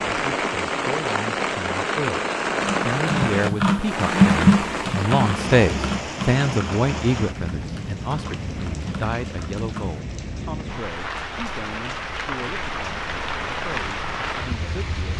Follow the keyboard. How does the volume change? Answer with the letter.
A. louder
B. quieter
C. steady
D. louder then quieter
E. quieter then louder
B.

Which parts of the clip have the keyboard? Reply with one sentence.
You can hear the keyboard from 2.6 to 10.0 s.